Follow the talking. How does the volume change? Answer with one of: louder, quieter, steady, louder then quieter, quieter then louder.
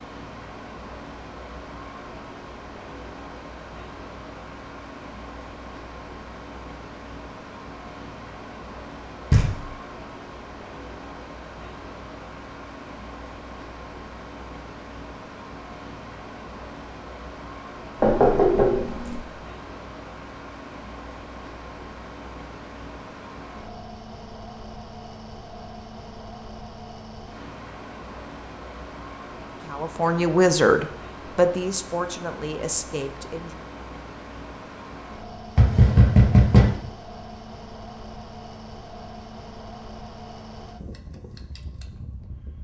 quieter.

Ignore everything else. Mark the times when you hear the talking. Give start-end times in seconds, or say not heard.
29.6-33.6.